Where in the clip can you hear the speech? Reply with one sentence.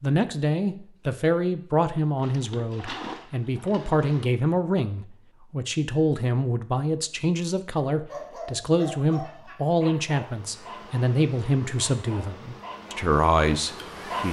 You can hear the speech from 0.0 to 14.2 s.